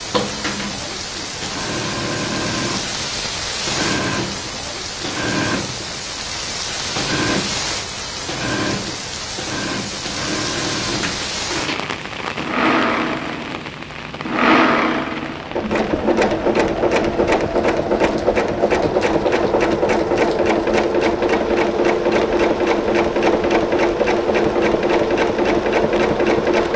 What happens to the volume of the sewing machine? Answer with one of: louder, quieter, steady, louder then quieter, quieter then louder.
louder.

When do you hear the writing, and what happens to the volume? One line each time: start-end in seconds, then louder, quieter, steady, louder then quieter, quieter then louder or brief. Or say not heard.
not heard.